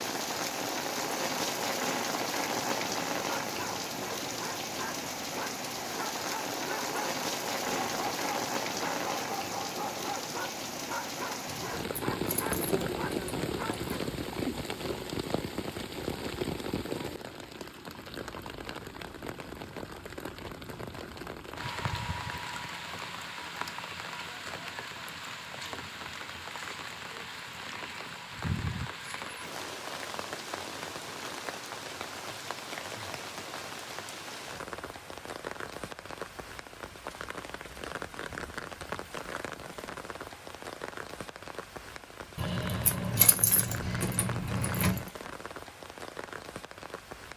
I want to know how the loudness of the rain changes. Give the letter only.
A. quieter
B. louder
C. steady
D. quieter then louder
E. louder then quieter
A.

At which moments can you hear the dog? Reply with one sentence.
The dog can be heard from 3.5 to 13.9 s.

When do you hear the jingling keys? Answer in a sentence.
You can hear the jingling keys from 11.4 to 14.0 s and from 42.4 to 45.0 s.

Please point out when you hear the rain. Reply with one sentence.
You can hear the rain from 0.0 to 47.3 s.